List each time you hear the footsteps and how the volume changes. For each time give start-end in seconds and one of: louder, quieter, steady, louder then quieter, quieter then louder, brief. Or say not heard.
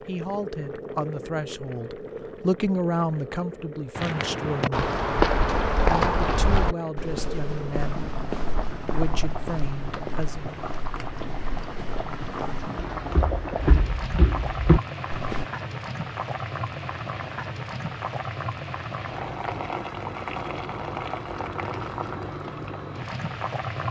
4.0-15.4 quieter then louder.